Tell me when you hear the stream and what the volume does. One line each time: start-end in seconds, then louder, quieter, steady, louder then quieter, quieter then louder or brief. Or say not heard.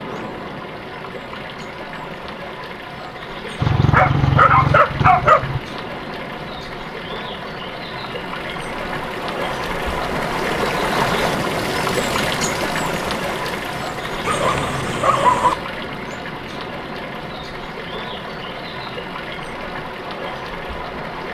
0.0-21.2 louder then quieter.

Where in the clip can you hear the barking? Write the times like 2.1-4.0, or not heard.
3.6-5.6, 14.2-15.6.